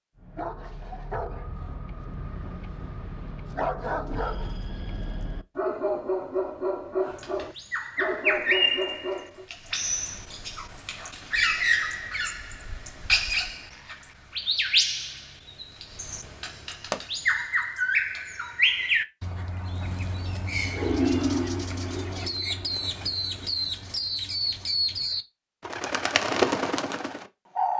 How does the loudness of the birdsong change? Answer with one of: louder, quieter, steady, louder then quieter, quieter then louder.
steady.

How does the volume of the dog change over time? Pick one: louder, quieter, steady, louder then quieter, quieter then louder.
louder.